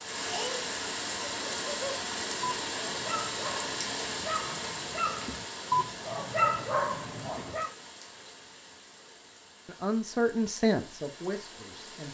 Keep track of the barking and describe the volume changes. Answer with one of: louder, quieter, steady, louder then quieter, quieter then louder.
louder.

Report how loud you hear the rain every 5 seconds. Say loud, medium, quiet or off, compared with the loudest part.
loud, medium, quiet.